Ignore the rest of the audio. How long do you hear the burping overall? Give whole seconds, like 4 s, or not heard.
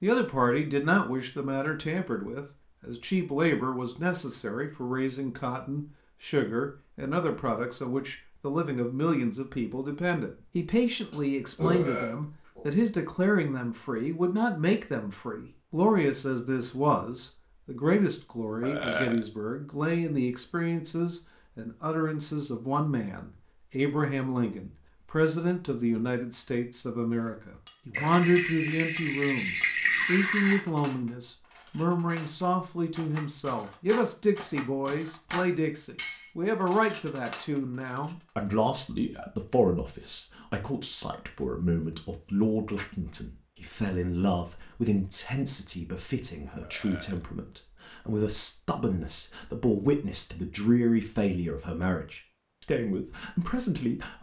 3 s.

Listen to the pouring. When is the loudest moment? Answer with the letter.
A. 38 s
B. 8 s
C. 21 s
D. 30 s
D.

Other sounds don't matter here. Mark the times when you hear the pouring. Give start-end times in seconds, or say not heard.
27.9-30.6.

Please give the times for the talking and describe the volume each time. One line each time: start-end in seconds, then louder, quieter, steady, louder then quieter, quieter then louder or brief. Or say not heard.
0.0-54.1 steady.